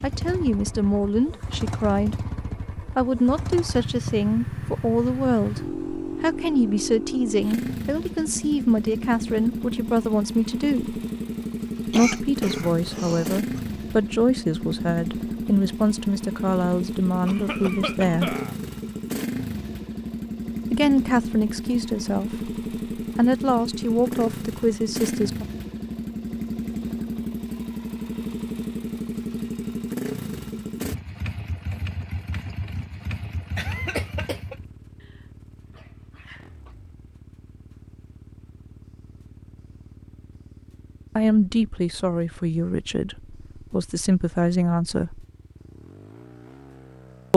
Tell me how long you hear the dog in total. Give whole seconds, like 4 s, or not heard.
2 s.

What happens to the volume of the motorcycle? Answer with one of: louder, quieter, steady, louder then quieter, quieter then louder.
quieter.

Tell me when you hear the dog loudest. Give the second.
36 s.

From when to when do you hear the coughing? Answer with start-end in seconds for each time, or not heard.
11.9-13.4, 17.2-18.6, 33.5-34.5.